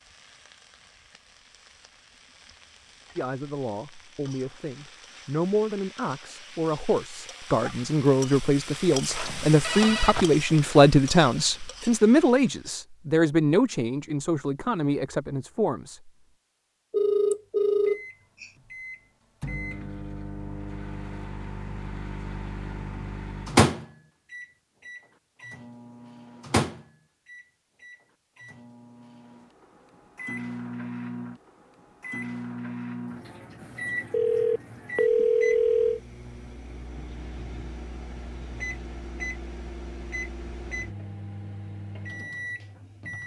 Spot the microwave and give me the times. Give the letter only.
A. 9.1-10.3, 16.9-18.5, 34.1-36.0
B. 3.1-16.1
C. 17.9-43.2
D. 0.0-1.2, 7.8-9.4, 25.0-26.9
C.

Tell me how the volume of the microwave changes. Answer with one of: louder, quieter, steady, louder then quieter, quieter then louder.
louder then quieter.